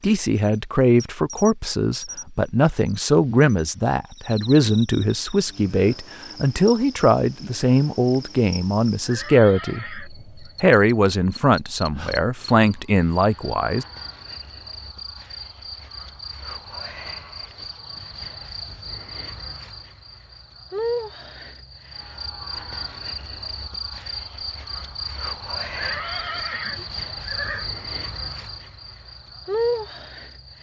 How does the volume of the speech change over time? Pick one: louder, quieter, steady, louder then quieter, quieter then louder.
steady.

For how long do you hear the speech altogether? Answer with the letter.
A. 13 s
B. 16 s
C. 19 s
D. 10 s
A.